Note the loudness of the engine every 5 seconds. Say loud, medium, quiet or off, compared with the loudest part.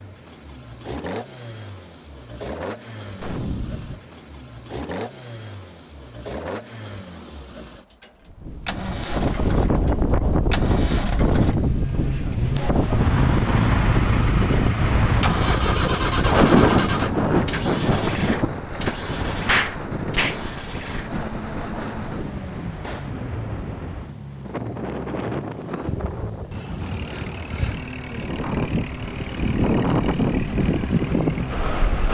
medium, medium, loud, loud, medium, medium, medium.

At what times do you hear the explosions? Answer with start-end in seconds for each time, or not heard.
3.1-4.0, 19.4-20.4.